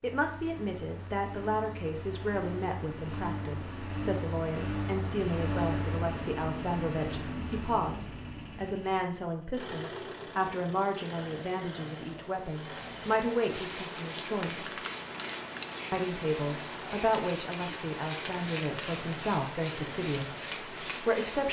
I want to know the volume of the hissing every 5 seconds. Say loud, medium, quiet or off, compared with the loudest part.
off, off, loud, loud, loud.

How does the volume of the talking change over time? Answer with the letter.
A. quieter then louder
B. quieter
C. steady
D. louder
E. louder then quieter
C.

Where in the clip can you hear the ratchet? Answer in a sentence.
You can't hear the ratchet here.